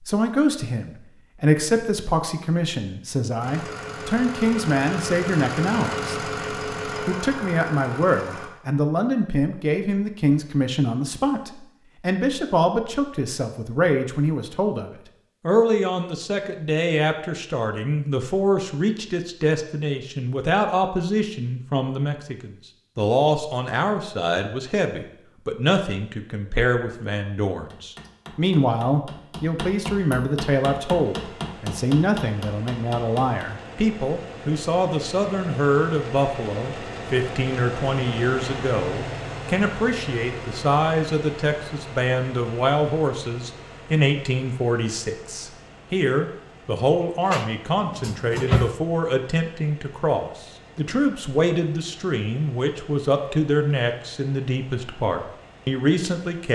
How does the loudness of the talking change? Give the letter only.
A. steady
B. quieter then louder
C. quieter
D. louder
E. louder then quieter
A.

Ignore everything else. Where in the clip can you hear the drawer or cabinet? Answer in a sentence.
The drawer or cabinet can be heard from 47.2 to 48.8 s.